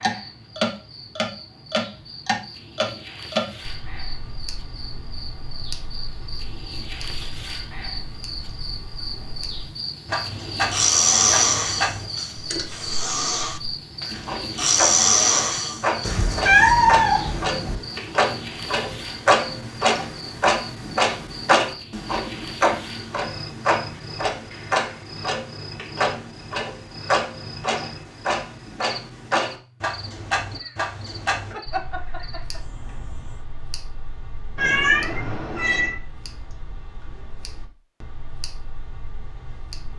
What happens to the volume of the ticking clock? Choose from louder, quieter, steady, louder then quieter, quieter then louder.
louder then quieter.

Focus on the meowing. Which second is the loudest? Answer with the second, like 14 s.
17 s.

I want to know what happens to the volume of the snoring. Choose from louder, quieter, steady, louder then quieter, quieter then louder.
quieter then louder.